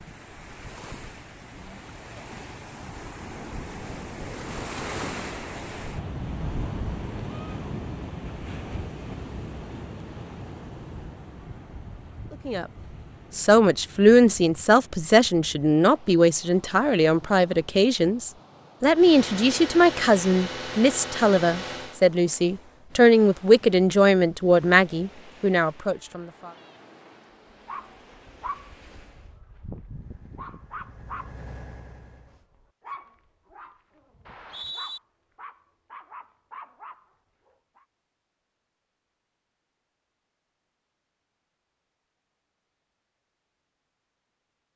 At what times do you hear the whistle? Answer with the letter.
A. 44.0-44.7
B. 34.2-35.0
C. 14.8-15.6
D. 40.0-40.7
B.